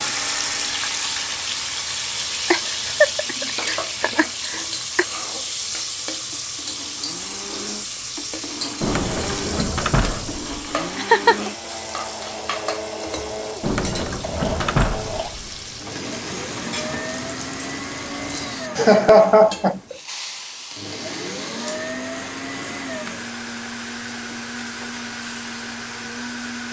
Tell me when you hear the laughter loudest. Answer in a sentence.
The volume of the laughter peaks at 19 seconds.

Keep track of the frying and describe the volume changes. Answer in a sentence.
The loudness of the frying goes down.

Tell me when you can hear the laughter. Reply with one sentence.
You can hear the laughter from 2.5 to 5.0 s, from 10.9 to 11.5 s and from 18.8 to 19.9 s.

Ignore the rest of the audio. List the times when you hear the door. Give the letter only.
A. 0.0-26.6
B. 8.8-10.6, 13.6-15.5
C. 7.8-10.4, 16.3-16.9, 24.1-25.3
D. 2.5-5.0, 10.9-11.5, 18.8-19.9
B.